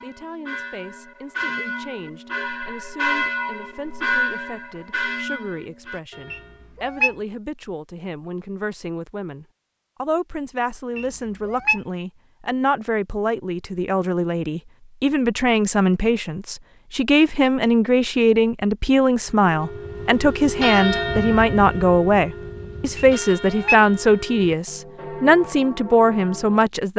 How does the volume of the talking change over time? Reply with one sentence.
The volume of the talking goes up.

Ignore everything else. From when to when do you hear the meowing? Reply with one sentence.
You can hear the meowing from 6.3 to 7.2 s, from 10.9 to 11.8 s and from 22.9 to 23.8 s.